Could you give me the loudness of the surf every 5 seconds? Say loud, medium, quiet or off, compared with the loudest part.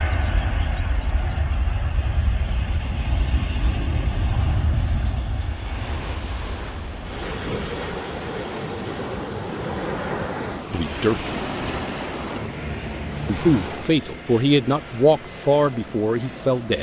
quiet, loud, loud, off.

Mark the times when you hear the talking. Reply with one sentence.
The talking can be heard from 10.7 to 11.3 s and from 13.2 to 16.7 s.